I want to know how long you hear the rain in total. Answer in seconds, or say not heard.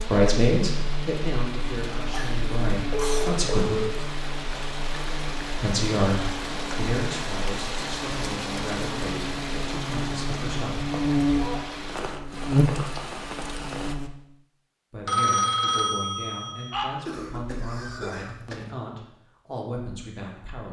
14 s.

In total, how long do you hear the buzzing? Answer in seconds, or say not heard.
14 s.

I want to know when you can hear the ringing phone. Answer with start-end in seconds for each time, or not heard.
2.9-3.9, 15.1-16.9.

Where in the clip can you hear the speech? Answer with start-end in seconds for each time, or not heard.
0.0-3.8, 5.6-10.8, 14.9-20.6.